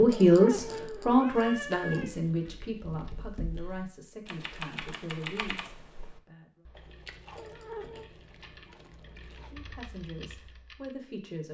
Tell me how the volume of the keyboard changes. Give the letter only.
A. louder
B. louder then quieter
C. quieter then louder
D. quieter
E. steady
C.